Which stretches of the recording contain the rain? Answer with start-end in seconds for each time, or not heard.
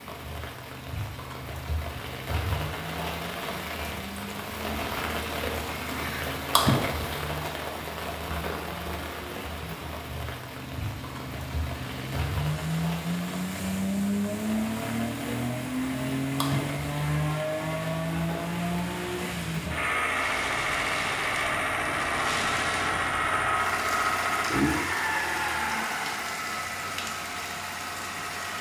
0.0-28.5.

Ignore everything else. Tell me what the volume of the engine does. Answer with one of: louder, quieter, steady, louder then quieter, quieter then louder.
louder.